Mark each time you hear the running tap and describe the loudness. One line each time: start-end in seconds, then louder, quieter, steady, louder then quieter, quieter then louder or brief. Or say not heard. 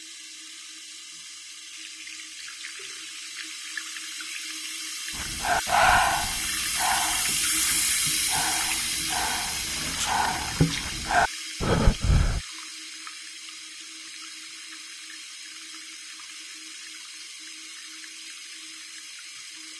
0.0-19.7 louder then quieter.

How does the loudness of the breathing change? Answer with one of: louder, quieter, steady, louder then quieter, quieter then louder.
quieter then louder.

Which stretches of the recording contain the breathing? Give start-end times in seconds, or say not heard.
5.2-12.4.